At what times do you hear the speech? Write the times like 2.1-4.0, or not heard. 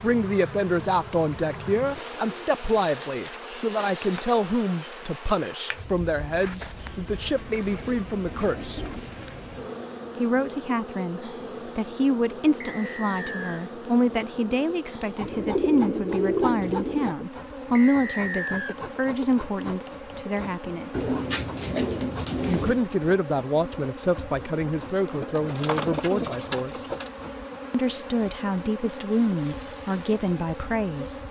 0.0-8.8, 10.2-21.1, 22.4-26.9, 27.7-31.2.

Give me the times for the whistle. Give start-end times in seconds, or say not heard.
12.6-13.6, 17.8-18.8.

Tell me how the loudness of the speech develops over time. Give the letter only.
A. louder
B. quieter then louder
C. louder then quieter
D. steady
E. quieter
D.